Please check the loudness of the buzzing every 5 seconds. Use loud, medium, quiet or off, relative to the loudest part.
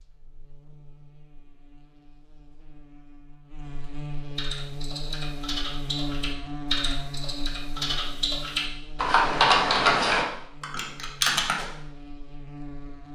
medium, loud, medium.